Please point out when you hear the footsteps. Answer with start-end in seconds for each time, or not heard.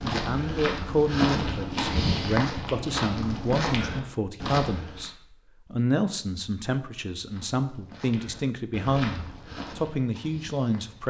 0.0-5.0, 7.2-11.0.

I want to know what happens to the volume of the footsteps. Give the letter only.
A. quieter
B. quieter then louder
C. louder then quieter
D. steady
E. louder
A.